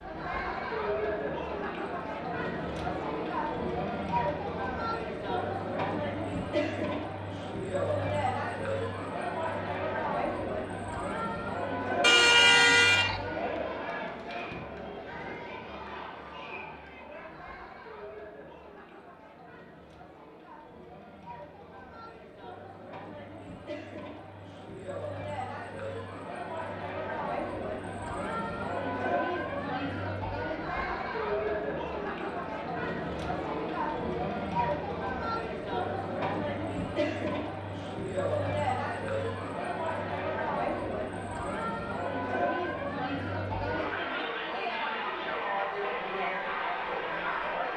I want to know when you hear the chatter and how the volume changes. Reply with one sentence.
You can hear the chatter from 0.0 to 47.7 s, getting quieter then louder.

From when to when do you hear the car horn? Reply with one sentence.
The car horn can be heard from 12.0 to 13.2 s.